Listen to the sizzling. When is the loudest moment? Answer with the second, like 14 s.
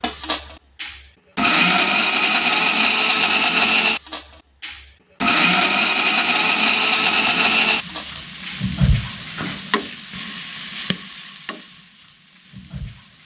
9 s.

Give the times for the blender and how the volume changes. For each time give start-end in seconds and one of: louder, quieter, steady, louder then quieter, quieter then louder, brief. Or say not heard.
0.0-8.7 steady.